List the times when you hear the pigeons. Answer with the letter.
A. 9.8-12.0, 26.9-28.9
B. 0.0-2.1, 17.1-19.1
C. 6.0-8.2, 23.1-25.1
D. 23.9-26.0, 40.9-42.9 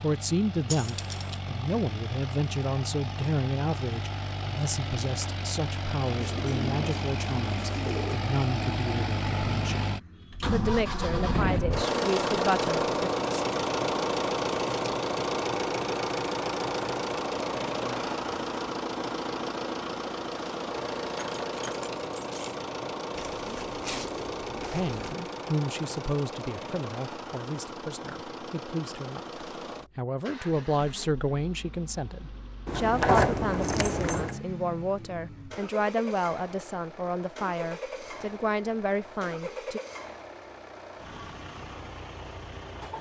C.